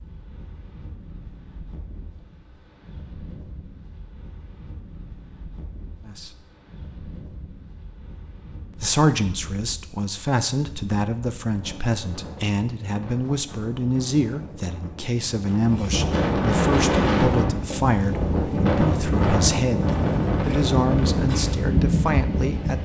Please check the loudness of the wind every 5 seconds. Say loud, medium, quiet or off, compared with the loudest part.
quiet, quiet, quiet, loud, loud.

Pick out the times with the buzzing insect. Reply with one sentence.
You can't hear the buzzing insect here.